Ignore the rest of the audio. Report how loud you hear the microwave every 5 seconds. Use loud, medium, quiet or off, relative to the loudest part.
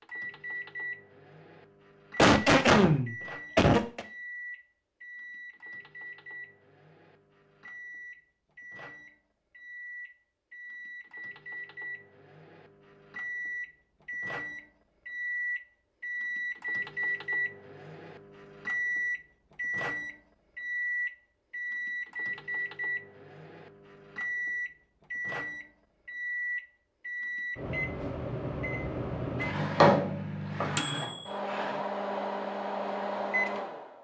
medium, quiet, medium, loud, loud, loud, loud.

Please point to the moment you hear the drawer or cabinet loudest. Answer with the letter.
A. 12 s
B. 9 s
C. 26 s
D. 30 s
D.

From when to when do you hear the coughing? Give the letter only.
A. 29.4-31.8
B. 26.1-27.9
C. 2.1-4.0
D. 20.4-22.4
C.